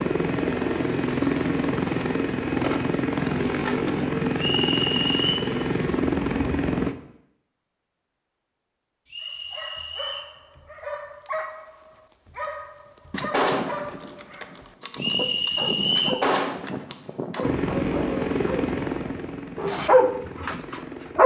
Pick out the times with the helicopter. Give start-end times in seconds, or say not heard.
0.0-7.0, 17.4-21.2.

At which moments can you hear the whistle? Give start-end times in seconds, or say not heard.
4.3-5.3, 9.1-10.3, 14.9-16.2.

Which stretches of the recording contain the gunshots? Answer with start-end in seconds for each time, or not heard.
13.1-17.6.